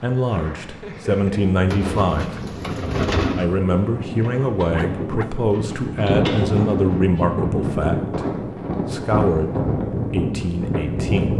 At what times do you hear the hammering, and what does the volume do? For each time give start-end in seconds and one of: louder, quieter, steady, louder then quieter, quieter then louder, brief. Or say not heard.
not heard.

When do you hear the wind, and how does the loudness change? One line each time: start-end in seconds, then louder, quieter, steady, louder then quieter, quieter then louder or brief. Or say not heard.
0.0-11.3 louder.